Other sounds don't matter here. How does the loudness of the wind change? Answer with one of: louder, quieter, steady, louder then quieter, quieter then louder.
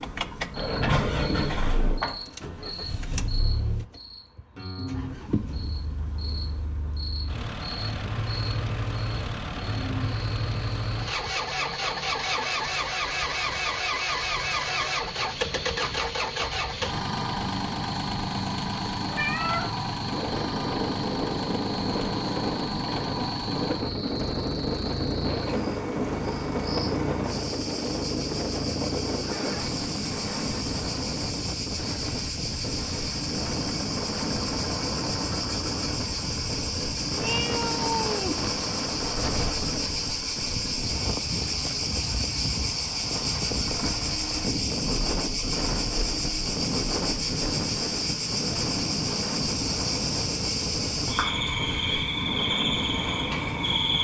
steady.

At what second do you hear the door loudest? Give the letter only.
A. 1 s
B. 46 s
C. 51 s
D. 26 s
A.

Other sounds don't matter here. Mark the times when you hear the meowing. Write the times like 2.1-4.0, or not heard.
19.1-19.8, 37.1-38.4.